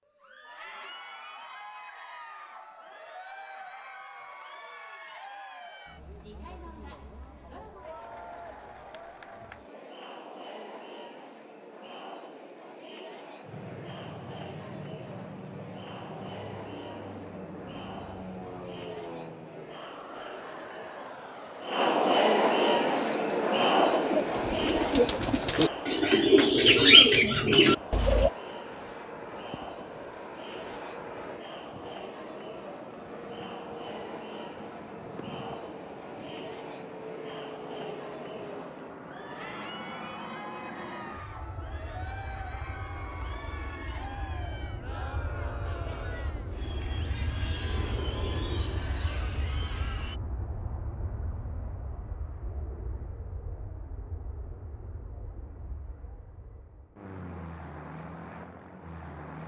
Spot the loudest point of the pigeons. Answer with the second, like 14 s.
27 s.